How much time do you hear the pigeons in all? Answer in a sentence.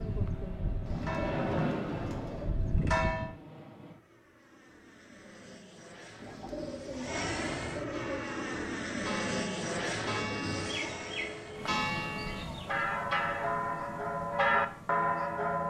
The pigeons can be heard for 6 seconds in total.